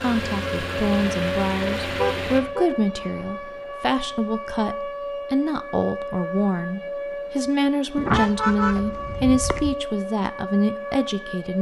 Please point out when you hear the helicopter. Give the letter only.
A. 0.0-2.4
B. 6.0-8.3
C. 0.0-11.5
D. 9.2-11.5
A.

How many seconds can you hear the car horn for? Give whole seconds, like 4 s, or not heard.
3 s.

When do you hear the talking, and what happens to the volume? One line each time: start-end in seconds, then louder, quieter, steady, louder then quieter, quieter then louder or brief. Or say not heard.
0.0-11.5 steady.